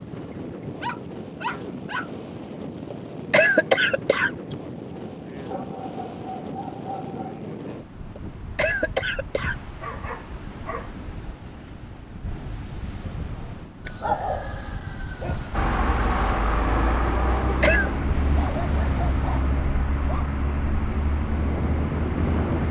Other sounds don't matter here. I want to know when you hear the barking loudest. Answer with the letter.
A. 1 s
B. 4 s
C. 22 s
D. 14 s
D.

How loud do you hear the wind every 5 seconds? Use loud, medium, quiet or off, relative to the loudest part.
medium, medium, medium, medium, loud.